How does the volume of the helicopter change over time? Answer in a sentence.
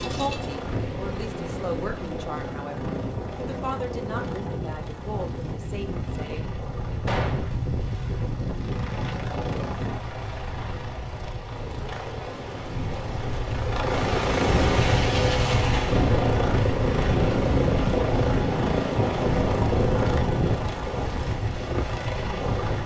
The loudness of the helicopter goes down, then up.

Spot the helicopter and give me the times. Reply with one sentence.
You can hear the helicopter from 0.0 to 22.8 s.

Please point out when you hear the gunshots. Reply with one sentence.
You can hear the gunshots from 7.0 to 7.5 s.